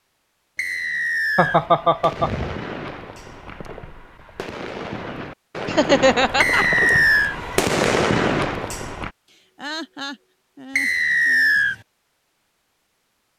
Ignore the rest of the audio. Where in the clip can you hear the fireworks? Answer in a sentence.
You can hear the fireworks from 1.4 to 9.1 s.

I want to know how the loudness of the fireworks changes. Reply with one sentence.
The volume of the fireworks goes down, then up.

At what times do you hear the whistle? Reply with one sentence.
The whistle can be heard from 0.6 to 1.6 s, from 6.4 to 7.3 s and from 10.8 to 11.8 s.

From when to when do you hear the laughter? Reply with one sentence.
You can hear the laughter from 1.4 to 2.5 s, from 5.7 to 6.7 s and from 9.3 to 11.6 s.